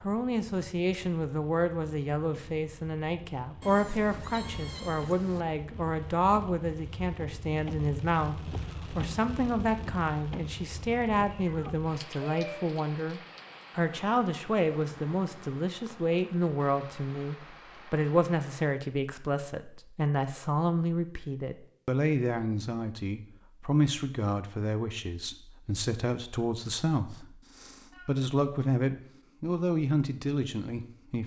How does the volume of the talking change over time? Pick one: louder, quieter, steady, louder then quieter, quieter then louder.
steady.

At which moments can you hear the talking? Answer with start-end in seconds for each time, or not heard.
0.0-31.2.